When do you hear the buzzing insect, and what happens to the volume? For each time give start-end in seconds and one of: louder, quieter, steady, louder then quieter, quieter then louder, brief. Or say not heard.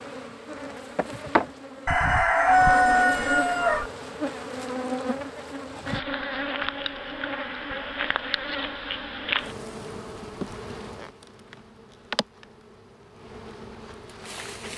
0.0-14.7 quieter.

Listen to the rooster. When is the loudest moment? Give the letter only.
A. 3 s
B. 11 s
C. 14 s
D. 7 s
A.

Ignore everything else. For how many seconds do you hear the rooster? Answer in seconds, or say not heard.
2 s.